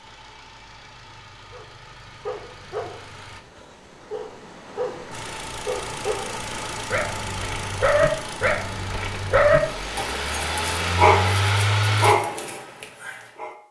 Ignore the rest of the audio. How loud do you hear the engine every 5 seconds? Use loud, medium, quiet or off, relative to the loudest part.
quiet, medium, loud.